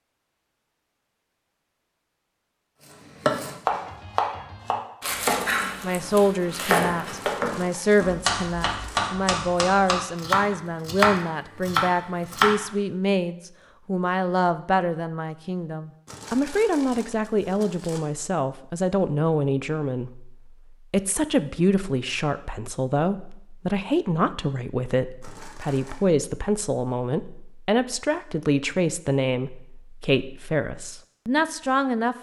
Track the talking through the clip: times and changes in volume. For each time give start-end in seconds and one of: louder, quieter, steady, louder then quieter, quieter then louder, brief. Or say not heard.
5.8-32.1 steady.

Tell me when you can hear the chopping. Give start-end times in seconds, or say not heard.
3.1-12.6.